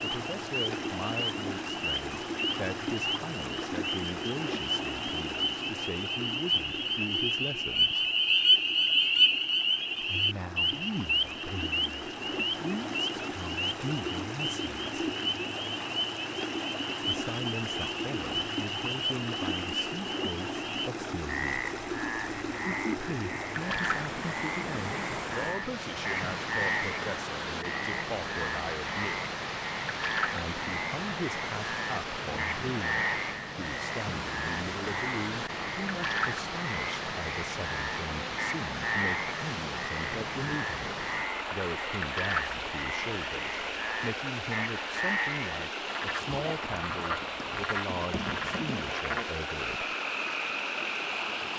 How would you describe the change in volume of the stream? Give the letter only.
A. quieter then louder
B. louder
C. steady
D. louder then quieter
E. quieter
C.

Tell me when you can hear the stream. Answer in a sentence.
You can hear the stream from 0.0 to 51.5 s.